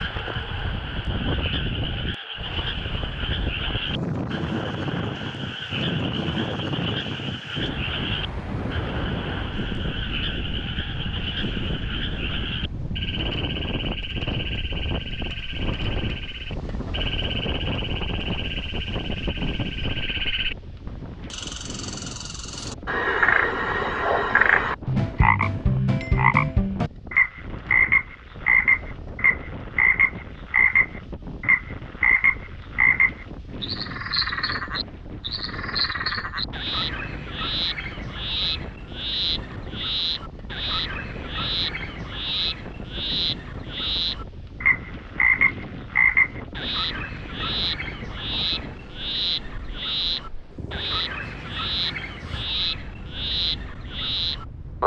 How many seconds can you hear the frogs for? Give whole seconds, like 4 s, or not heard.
55 s.